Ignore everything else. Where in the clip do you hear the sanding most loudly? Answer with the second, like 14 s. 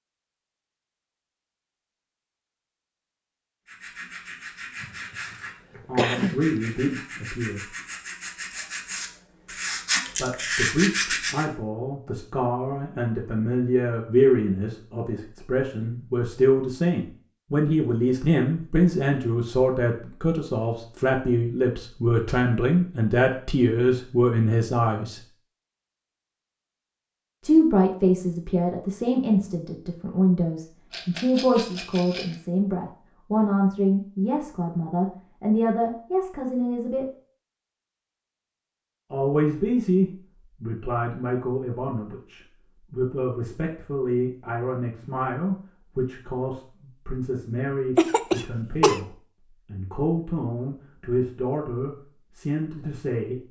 11 s.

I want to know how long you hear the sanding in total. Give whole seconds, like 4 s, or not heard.
8 s.